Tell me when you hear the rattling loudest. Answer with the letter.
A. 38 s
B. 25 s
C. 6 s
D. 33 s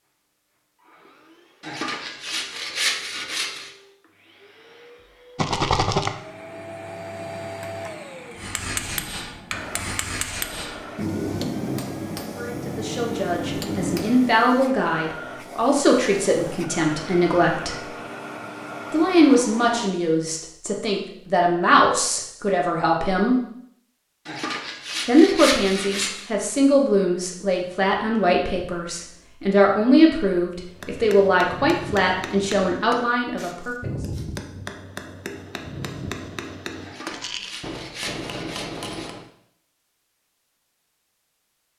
C.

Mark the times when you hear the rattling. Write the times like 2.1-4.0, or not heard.
5.3-6.2, 37.1-37.6.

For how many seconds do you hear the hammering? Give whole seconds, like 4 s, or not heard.
15 s.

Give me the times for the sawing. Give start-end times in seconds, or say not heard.
1.6-3.7, 24.2-26.3, 36.8-39.1.